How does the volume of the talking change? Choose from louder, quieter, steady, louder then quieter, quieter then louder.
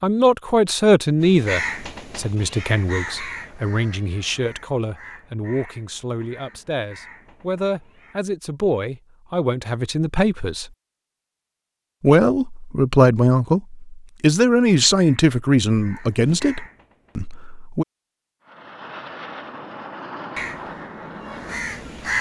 quieter then louder.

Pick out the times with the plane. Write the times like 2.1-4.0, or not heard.
18.4-22.1.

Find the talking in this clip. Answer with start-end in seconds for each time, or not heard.
0.0-10.7, 12.0-17.9.